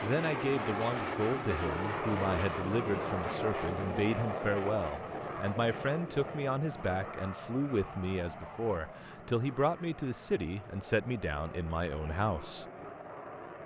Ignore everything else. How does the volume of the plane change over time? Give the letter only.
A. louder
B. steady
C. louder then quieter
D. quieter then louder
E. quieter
E.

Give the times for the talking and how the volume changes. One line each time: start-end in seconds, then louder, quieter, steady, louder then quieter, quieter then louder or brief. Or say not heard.
0.0-12.7 steady.